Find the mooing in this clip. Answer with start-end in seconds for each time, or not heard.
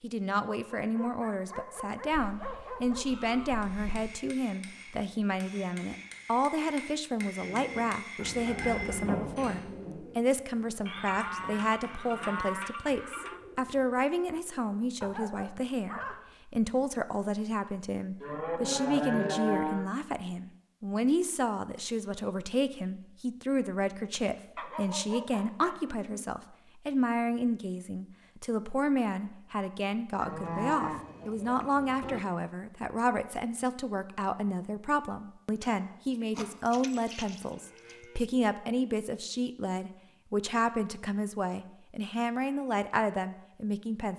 2.1-4.1, 10.8-13.4, 18.2-19.9, 30.2-32.2, 36.7-38.2.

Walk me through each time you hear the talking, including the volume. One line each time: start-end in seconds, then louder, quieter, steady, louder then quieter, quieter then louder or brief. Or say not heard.
0.0-44.1 steady.